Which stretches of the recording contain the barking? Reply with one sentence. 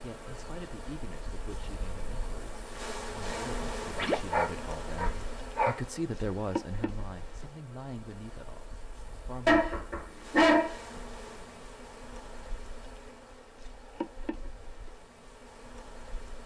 You can hear the barking from 3.9 to 5.8 s and from 9.4 to 10.9 s.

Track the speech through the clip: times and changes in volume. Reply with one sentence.
You can hear the speech from 0.0 to 9.7 s, getting louder then quieter.